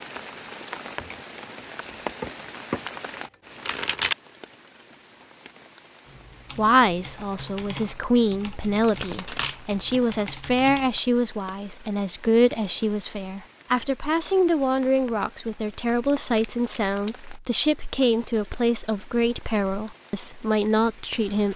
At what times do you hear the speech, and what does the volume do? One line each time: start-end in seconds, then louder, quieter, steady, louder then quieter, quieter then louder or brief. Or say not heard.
6.5-21.5 steady.